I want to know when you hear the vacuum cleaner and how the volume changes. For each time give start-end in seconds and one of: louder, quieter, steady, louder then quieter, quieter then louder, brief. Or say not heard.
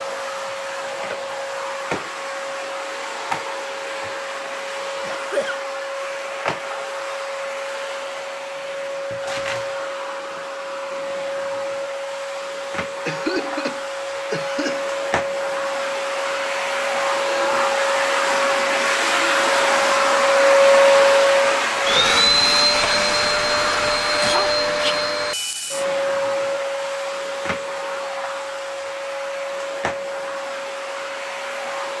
0.0-31.9 louder then quieter.